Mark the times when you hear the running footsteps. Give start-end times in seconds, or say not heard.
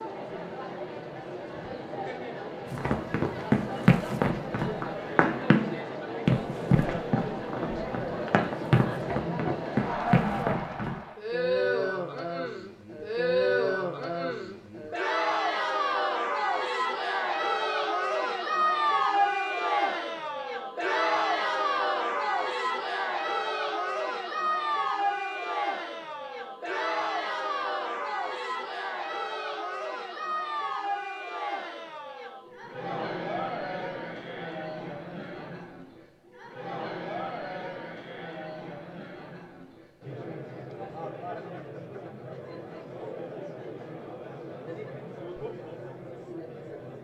2.7-11.0.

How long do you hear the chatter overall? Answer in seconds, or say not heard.
47 s.